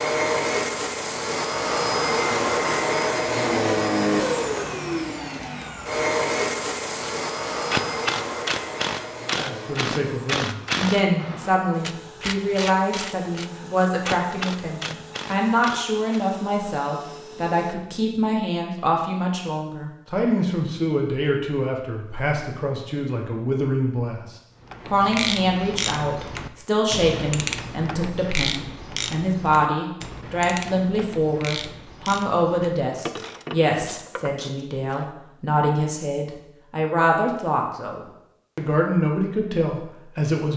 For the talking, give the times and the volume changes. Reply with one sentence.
You can hear the talking from 9.3 to 40.5 s, at a steady volume.